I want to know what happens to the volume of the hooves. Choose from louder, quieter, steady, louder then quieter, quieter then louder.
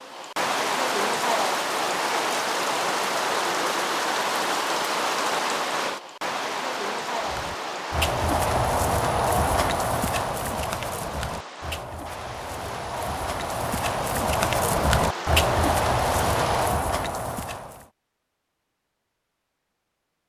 quieter then louder.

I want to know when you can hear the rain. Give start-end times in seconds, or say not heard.
0.0-16.9.